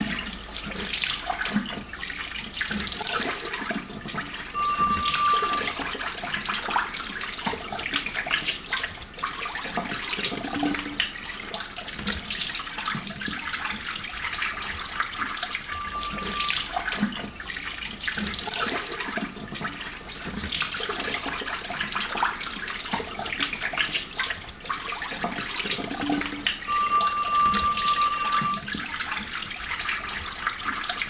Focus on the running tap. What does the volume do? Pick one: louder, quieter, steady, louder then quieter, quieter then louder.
steady.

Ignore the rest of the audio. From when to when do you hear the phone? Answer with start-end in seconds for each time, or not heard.
4.5-5.8, 15.7-16.4, 26.6-28.6.